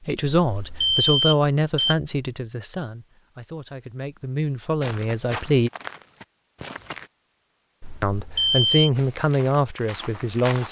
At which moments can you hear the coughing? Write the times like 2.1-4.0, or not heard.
not heard.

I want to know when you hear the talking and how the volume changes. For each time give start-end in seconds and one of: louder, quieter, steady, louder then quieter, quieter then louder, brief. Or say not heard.
0.0-5.7 quieter then louder
8.0-10.6 brief.